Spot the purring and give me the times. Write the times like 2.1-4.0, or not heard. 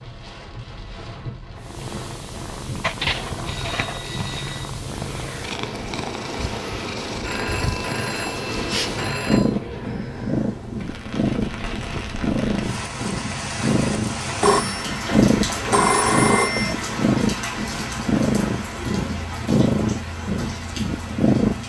1.6-21.6.